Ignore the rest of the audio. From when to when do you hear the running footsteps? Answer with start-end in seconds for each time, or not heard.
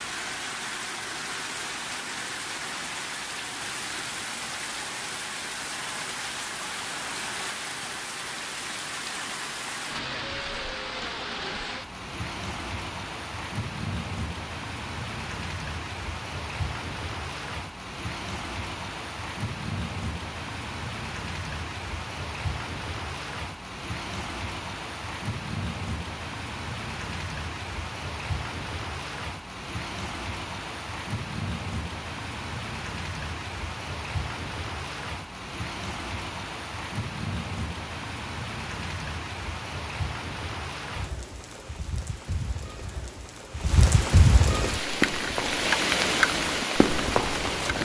44.8-47.8.